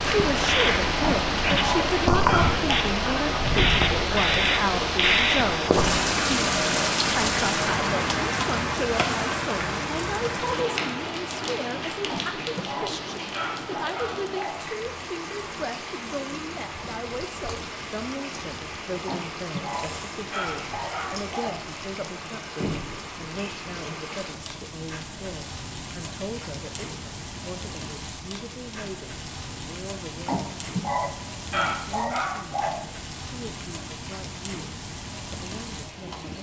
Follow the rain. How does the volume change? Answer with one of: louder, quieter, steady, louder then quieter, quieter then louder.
quieter.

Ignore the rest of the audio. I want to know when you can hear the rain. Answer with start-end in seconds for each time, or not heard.
0.0-36.3.